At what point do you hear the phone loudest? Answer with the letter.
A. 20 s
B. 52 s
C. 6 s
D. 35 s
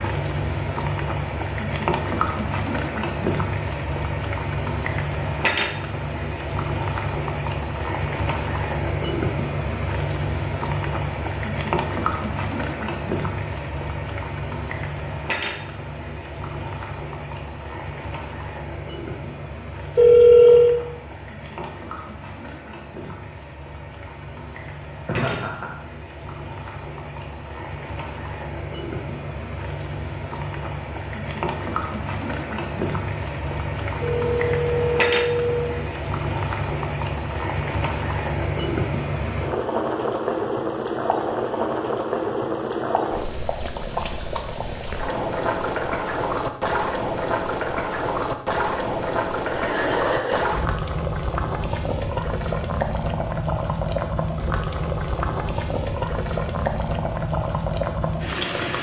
A.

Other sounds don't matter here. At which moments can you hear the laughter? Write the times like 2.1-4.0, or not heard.
25.1-25.8, 49.4-50.5.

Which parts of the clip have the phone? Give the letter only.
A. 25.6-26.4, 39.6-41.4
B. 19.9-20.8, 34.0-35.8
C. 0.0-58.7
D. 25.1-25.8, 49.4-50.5
B.